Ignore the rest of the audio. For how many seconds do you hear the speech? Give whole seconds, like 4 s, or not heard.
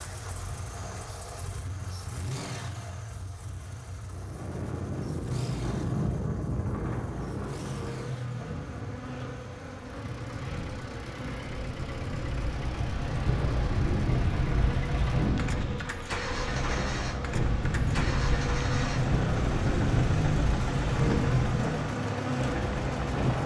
not heard.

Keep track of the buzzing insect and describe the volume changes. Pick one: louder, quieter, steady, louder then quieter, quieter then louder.
louder.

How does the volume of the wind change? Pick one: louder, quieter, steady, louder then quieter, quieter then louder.
quieter then louder.